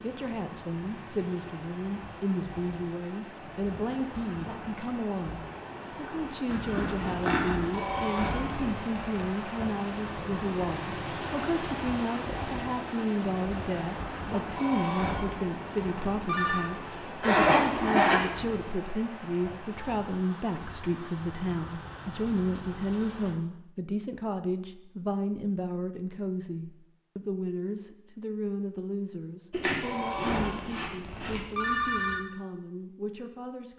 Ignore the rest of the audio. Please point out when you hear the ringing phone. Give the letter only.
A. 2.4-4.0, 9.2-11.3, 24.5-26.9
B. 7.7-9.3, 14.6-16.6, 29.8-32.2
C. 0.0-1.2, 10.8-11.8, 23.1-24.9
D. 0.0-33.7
B.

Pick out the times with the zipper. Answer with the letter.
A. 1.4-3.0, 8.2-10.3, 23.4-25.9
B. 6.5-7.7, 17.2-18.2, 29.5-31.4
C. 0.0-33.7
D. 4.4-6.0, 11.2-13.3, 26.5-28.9
B.